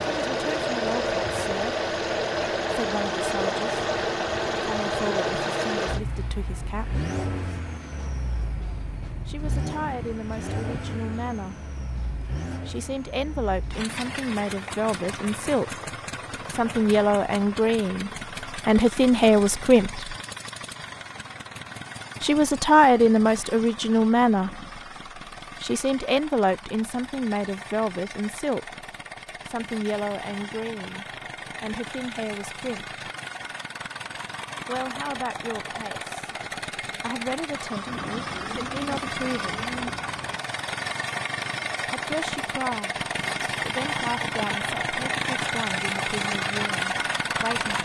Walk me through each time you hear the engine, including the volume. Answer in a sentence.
The engine can be heard from 0.0 to 47.8 s, getting quieter then louder.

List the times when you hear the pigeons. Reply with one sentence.
You can hear the pigeons from 37.9 to 40.4 s.